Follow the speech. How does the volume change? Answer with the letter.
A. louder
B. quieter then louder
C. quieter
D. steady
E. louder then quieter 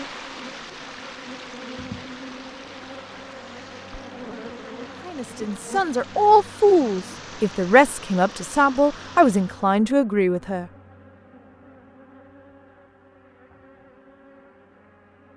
D.